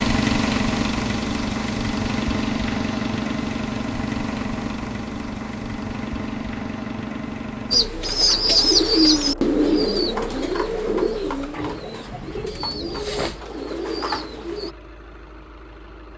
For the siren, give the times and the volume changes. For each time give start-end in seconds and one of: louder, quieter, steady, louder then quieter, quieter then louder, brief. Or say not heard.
not heard.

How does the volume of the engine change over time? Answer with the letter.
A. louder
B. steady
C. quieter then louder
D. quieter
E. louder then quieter
D.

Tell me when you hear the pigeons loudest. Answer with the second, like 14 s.
9 s.